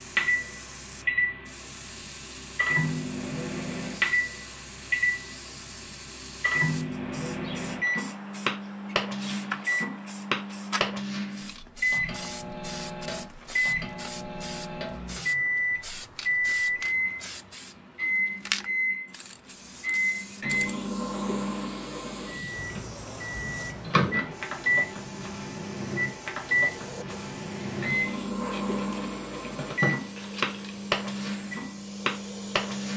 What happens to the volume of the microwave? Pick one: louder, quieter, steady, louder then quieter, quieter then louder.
steady.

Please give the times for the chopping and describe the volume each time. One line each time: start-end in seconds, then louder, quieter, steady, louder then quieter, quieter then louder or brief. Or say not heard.
not heard.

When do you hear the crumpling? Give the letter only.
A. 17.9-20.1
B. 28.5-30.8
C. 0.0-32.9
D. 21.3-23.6
B.